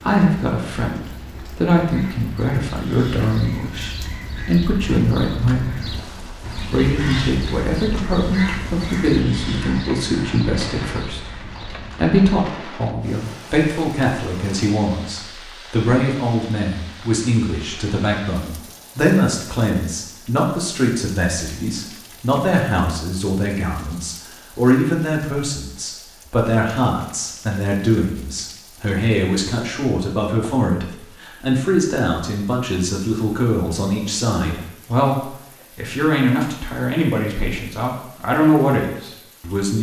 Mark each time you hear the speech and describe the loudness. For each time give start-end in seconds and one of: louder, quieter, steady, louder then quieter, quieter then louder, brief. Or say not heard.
0.0-39.7 steady.